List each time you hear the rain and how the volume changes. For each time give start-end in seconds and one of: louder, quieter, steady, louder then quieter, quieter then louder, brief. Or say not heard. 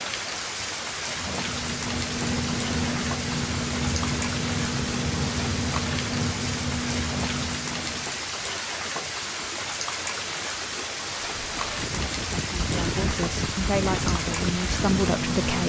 0.0-15.6 steady.